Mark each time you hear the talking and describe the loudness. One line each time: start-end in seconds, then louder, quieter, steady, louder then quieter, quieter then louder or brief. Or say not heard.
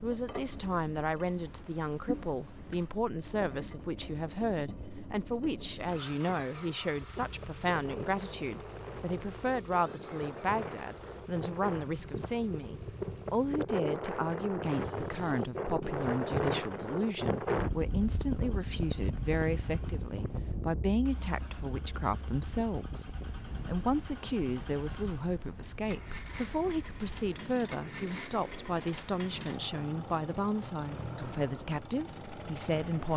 0.0-33.1 steady.